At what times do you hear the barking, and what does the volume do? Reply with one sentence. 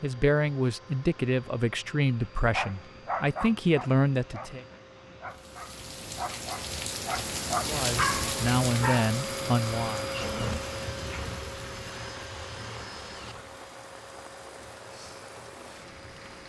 The barking can be heard from 2.5 to 9.1 s, getting quieter then louder.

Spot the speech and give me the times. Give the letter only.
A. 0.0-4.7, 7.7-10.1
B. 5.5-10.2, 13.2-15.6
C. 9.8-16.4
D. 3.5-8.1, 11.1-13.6
A.